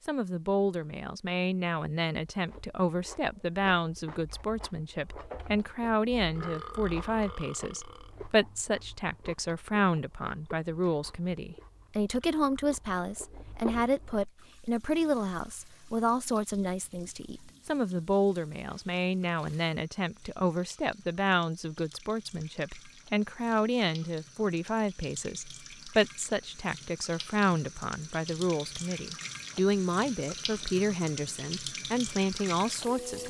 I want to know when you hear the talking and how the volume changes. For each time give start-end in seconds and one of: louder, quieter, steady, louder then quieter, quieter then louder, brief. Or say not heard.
0.1-33.2 steady.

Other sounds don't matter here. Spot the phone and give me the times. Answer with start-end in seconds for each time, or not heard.
not heard.